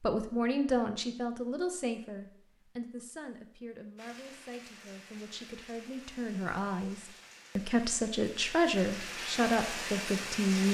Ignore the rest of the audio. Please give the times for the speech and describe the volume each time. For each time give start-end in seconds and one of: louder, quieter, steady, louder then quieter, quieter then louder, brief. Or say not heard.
0.0-10.6 quieter then louder.